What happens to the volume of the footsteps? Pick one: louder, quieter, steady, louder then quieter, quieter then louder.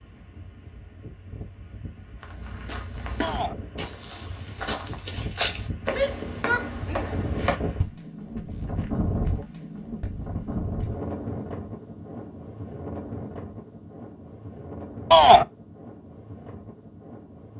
louder then quieter.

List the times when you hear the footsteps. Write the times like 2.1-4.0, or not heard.
2.2-10.9.